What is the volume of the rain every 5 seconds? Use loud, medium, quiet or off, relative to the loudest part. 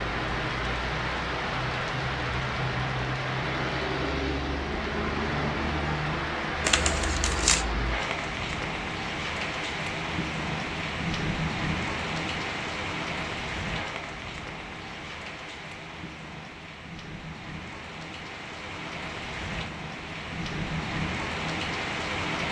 loud, loud, loud, medium, loud.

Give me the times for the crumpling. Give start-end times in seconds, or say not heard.
6.6-7.7.